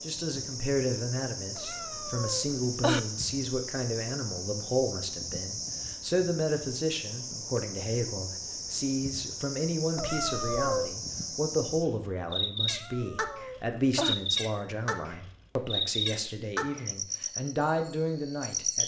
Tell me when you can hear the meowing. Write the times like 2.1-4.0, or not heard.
1.6-3.0, 9.9-10.9, 12.7-14.2.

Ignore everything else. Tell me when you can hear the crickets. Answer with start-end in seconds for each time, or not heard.
0.0-18.8.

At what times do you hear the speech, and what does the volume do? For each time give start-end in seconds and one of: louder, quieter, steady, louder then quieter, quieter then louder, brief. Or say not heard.
0.0-18.8 steady.